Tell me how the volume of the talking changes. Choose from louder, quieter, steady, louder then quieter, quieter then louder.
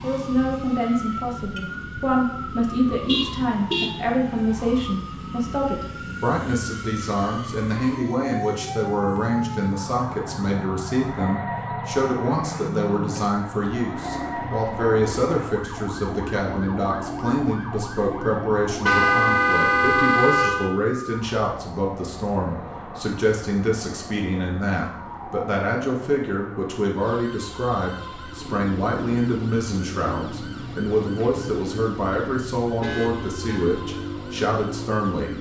steady.